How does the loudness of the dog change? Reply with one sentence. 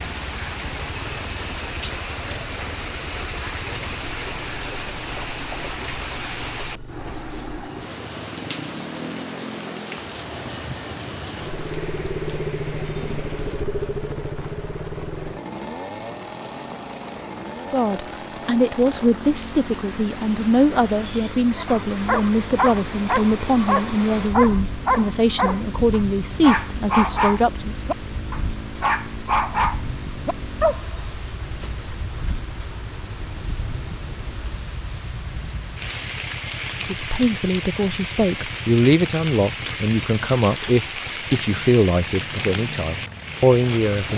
The volume of the dog stays about the same.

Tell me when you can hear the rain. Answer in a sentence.
The rain can be heard from 0.0 to 44.1 s.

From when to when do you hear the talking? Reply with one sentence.
You can hear the talking from 17.7 to 27.8 s and from 36.9 to 44.1 s.